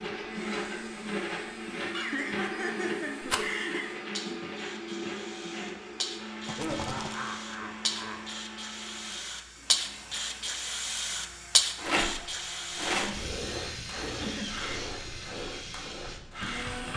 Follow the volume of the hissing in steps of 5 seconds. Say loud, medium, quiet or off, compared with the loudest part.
quiet, loud, loud, medium.